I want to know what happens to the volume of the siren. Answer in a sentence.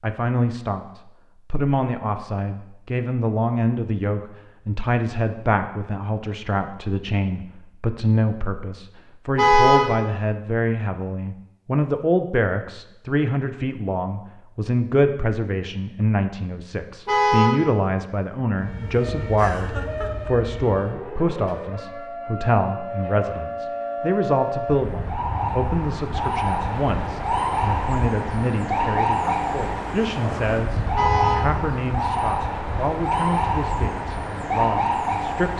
The loudness of the siren goes up.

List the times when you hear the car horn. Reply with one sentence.
You can hear the car horn from 9.3 to 9.8 s, from 17.1 to 17.6 s and from 30.9 to 31.4 s.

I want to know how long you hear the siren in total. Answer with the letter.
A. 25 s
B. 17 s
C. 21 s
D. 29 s
B.